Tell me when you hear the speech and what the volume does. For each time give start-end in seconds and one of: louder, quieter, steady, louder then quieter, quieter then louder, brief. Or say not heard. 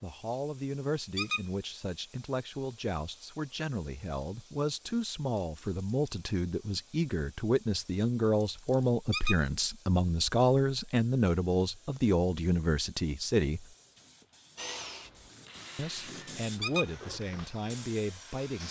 0.0-13.7 louder
15.8-18.6 brief.